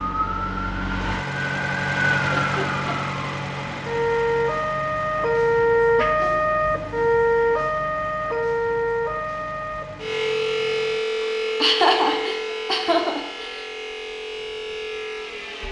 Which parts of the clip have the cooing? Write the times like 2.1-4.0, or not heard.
not heard.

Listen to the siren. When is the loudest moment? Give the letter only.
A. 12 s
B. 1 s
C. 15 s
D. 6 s
D.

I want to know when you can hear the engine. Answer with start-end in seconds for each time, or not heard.
0.0-11.1.